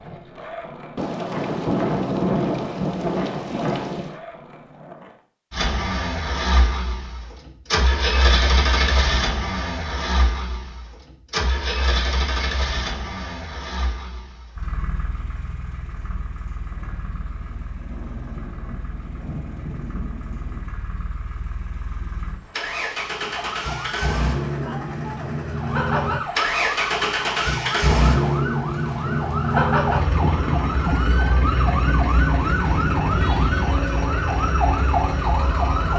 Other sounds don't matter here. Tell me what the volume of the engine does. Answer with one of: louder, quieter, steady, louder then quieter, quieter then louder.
quieter then louder.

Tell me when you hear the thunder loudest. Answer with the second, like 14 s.
2 s.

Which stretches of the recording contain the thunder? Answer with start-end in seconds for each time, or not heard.
0.9-4.2, 16.7-20.6, 30.1-33.7.